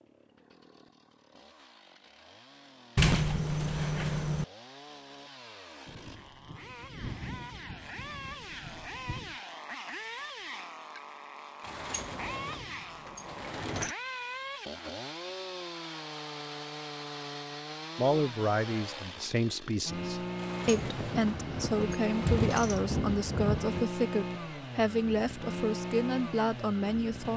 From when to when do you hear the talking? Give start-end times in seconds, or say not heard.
17.9-27.3.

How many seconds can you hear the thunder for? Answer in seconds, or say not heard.
7 s.